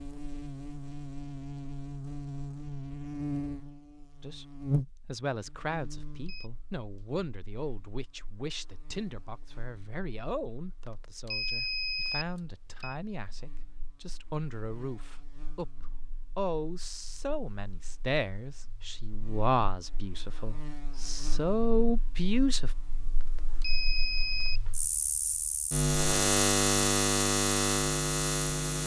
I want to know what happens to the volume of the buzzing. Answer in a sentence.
The loudness of the buzzing goes down, then up.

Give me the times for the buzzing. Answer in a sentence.
You can hear the buzzing from 0.0 to 28.8 s.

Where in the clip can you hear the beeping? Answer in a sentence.
The beeping can be heard from 5.8 to 6.5 s, from 10.8 to 12.9 s and from 23.2 to 24.6 s.